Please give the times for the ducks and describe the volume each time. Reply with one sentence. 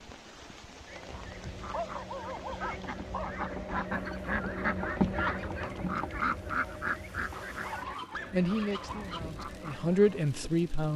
You can hear the ducks from 0.8 to 10.2 s, getting louder then quieter.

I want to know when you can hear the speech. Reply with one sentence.
You can hear the speech from 8.3 to 10.9 s.